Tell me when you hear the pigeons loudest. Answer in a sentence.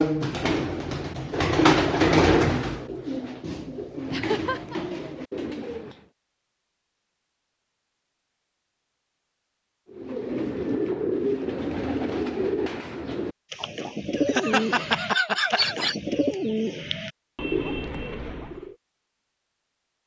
The volume of the pigeons peaks at 2 seconds.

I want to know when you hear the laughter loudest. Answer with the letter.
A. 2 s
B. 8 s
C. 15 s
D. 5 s
C.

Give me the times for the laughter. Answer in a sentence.
You can hear the laughter from 4.1 to 4.8 s and from 14.2 to 16.0 s.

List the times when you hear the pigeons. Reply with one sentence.
You can hear the pigeons from 0.0 to 6.0 s and from 9.9 to 18.8 s.